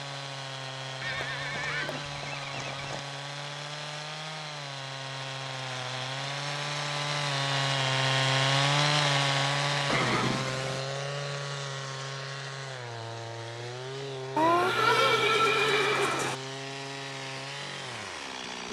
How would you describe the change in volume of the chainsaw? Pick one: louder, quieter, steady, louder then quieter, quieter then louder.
louder then quieter.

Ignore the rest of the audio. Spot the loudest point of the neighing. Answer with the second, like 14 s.
15 s.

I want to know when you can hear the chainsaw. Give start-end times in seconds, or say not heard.
0.0-18.6.